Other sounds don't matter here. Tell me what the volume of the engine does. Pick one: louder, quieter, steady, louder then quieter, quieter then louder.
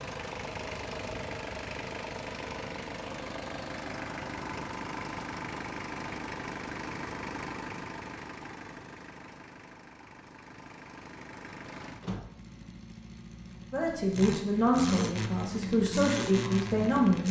quieter then louder.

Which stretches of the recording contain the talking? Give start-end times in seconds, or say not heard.
13.7-17.2.